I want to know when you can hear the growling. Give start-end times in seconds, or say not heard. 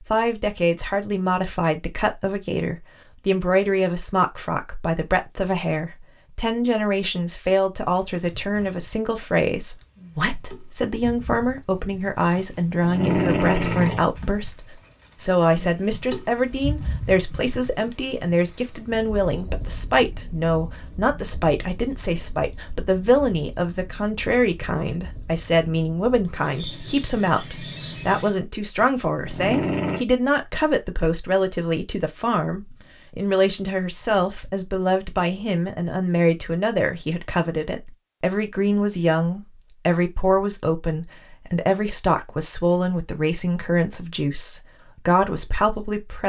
12.3-14.1, 28.8-30.1.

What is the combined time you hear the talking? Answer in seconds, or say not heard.
46 s.